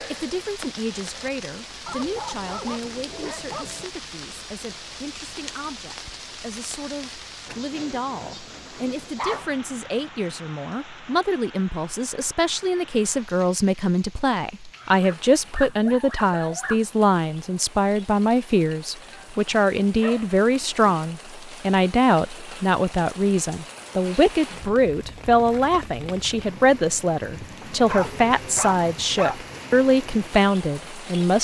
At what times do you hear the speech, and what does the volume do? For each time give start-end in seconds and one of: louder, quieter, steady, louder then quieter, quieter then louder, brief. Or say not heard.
0.1-31.3 louder.